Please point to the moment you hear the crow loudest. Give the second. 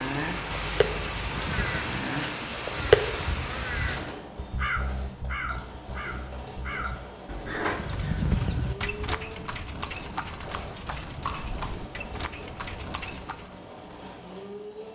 3 s.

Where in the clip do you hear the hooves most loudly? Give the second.
8 s.